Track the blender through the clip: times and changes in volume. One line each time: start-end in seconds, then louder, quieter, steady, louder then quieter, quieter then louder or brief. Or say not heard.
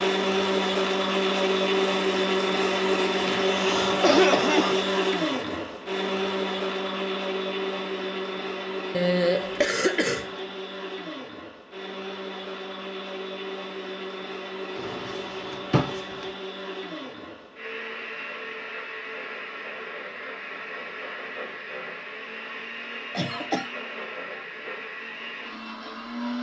0.0-26.3 quieter.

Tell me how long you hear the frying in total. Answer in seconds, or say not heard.
not heard.